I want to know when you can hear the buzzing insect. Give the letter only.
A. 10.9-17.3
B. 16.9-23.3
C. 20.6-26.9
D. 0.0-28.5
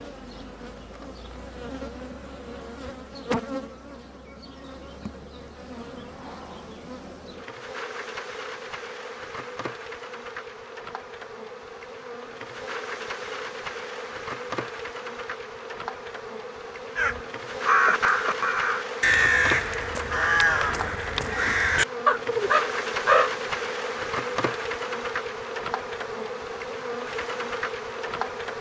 D.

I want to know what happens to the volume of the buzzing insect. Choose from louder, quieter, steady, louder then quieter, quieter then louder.
louder.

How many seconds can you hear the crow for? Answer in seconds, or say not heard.
6 s.